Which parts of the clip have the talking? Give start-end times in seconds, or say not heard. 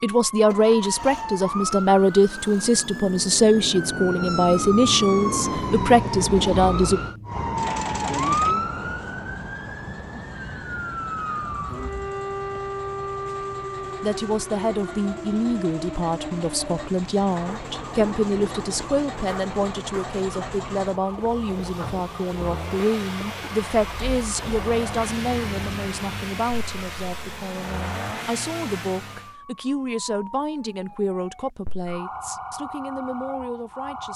0.0-7.0, 14.0-34.1.